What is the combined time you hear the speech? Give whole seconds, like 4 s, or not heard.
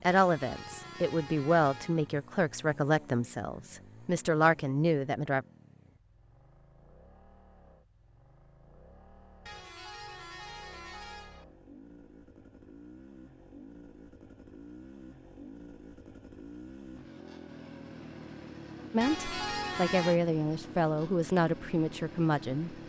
9 s.